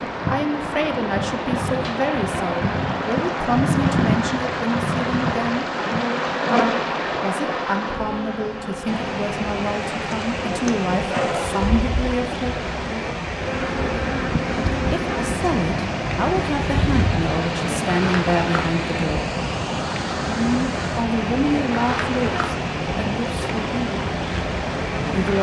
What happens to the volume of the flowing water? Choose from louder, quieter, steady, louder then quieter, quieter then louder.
steady.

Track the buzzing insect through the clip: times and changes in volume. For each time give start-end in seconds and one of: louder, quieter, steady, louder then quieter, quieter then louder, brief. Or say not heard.
0.0-25.3 steady.